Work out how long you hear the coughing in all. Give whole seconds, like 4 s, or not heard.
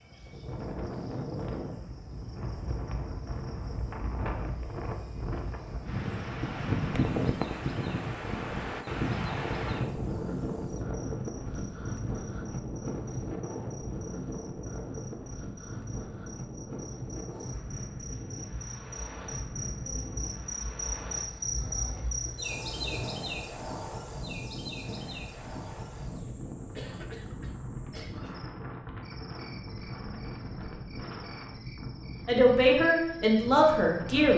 2 s.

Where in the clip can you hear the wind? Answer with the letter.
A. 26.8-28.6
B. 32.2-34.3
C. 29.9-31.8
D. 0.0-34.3
D.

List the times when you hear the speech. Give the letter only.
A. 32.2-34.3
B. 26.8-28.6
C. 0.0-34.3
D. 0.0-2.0
A.